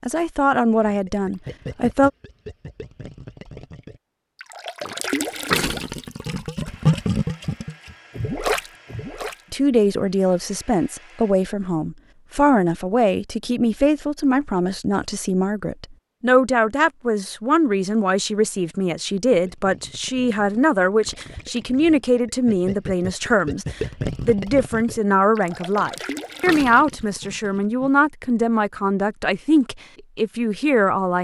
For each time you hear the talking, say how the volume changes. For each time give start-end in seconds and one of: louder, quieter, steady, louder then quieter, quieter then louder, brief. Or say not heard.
0.0-2.1 brief
9.5-31.1 steady.